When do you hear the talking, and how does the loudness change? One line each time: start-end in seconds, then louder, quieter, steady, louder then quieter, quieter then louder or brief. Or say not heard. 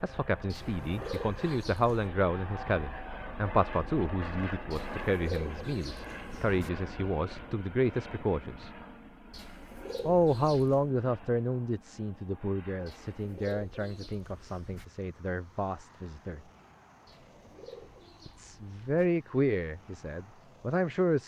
0.0-8.7 steady
10.1-16.4 quieter
18.2-21.2 brief.